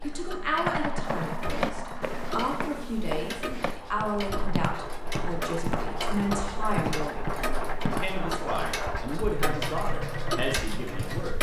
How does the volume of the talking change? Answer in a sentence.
The volume of the talking stays about the same.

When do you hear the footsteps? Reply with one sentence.
You can hear the footsteps from 1.1 to 8.2 s.